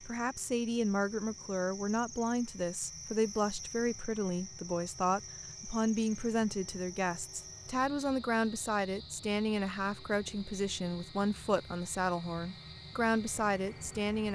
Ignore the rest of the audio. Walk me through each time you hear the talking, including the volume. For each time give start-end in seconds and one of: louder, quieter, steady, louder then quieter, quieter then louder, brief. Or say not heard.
0.0-14.2 steady.